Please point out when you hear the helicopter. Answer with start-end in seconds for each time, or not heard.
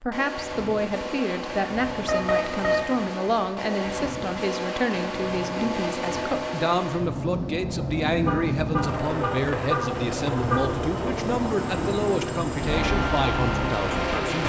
0.1-14.4.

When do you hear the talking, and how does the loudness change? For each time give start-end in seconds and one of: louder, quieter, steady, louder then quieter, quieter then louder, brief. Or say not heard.
0.0-14.4 steady.